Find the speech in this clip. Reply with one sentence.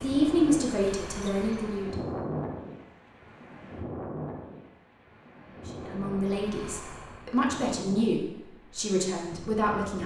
You can hear the speech from 0.0 to 2.0 s and from 5.8 to 10.0 s.